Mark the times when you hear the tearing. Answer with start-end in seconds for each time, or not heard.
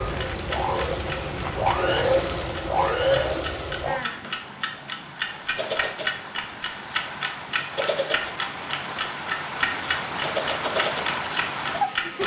not heard.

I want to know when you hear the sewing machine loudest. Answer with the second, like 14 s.
3 s.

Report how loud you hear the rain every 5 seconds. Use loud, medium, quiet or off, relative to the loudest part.
medium, medium, loud.